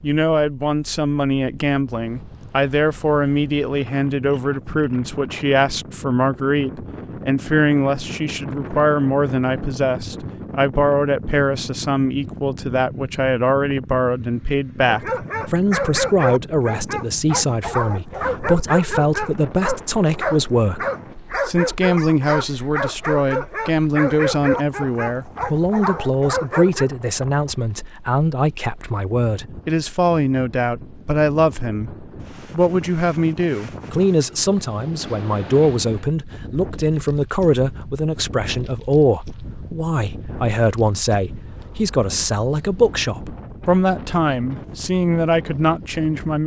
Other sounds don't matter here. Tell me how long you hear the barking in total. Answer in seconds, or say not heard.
12 s.